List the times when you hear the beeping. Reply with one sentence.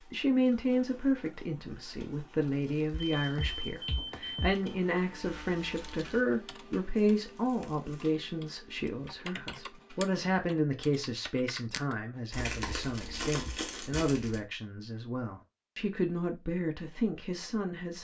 The beeping can be heard from 2.9 to 4.7 s.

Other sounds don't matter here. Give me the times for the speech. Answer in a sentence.
You can hear the speech from 0.1 to 18.0 s.